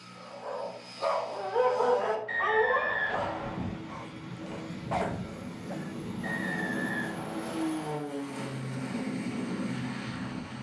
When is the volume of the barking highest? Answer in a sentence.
The volume of the barking peaks at 2 seconds.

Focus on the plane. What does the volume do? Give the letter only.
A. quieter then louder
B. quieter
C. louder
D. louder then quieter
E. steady
C.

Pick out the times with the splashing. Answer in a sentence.
The splashing can't be heard in this clip.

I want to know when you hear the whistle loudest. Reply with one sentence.
The volume of the whistle peaks at 3 seconds.